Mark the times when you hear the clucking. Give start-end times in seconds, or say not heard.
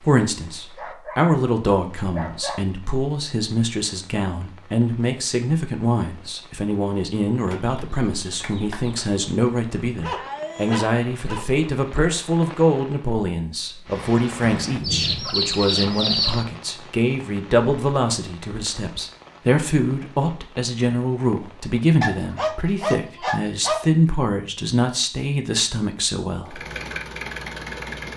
7.5-9.2, 14.8-16.4.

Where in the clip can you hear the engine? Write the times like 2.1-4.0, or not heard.
26.4-28.1.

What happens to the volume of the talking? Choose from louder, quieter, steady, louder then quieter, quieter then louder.
steady.